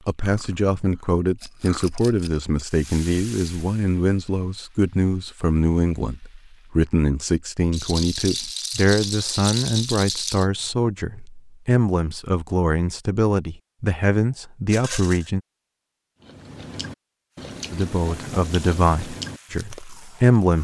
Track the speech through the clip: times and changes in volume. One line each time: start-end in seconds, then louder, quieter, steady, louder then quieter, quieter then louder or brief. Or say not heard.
0.1-15.4 steady
17.7-20.5 brief.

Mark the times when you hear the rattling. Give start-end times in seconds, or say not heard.
1.4-2.4, 7.7-10.4, 14.7-15.3.